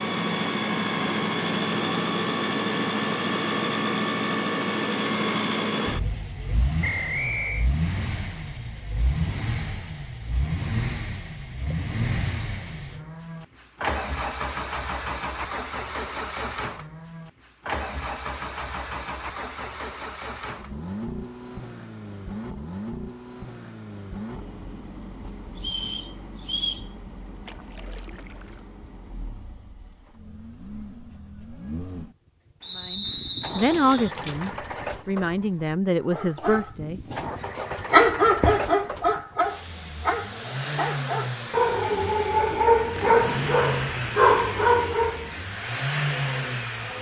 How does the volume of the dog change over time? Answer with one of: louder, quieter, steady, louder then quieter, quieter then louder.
quieter then louder.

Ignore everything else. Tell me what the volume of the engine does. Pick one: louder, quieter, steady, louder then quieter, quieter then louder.
quieter then louder.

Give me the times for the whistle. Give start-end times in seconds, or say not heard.
6.8-7.7, 25.6-26.9, 32.6-33.9.